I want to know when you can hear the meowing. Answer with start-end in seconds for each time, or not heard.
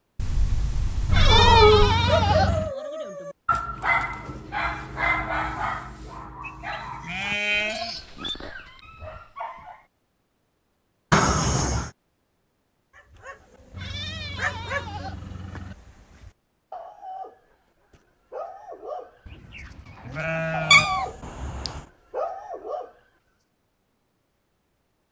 0.1-1.9, 11.1-11.9, 20.7-21.8.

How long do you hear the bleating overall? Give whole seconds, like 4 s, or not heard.
7 s.